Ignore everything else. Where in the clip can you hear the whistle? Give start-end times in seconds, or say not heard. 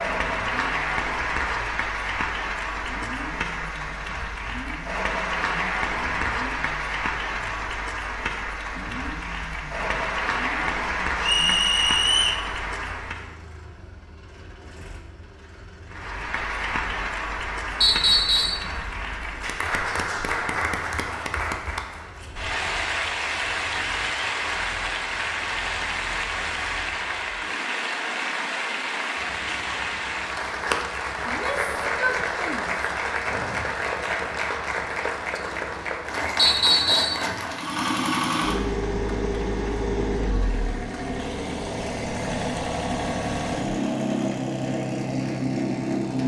11.2-12.4, 17.8-18.6, 36.4-37.2.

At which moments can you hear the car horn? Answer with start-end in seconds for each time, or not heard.
not heard.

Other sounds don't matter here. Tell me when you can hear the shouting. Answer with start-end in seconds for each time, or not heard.
31.2-32.9.